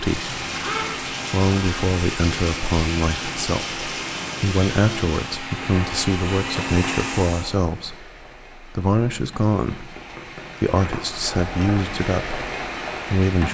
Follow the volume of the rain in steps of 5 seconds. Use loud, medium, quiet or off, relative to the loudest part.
loud, medium, loud.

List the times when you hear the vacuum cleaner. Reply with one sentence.
The vacuum cleaner can be heard from 0.0 to 7.5 s.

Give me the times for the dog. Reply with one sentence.
You can't hear the dog here.